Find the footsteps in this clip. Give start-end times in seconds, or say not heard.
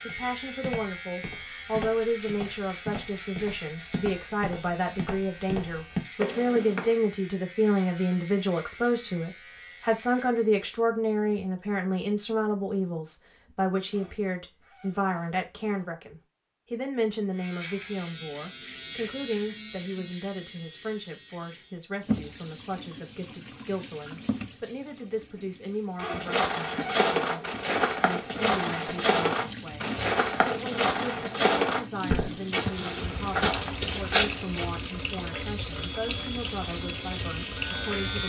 0.0-7.0, 26.1-34.7.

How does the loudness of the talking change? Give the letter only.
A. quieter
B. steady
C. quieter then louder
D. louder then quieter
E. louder
A.